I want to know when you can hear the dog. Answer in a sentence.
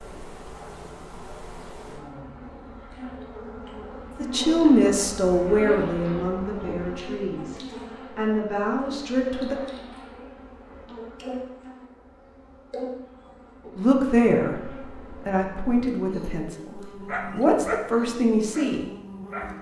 You can hear the dog from 16.9 to 19.5 s.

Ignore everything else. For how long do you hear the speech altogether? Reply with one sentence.
The speech can be heard for 11 seconds in total.